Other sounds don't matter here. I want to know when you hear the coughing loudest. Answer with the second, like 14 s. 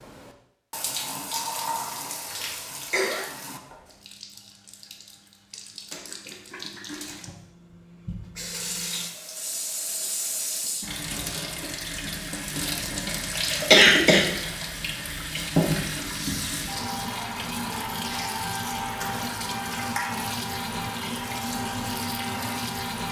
14 s.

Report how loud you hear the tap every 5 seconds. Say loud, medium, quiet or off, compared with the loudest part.
medium, medium, loud, loud, loud.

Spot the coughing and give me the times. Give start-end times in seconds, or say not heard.
2.2-3.3, 13.3-14.2.